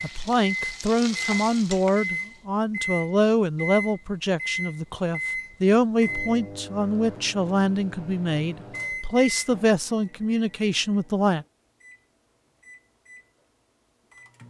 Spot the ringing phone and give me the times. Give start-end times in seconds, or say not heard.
not heard.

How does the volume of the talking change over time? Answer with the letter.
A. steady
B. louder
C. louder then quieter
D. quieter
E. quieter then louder
A.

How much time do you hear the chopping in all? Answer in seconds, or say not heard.
not heard.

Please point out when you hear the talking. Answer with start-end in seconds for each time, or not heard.
0.0-11.4.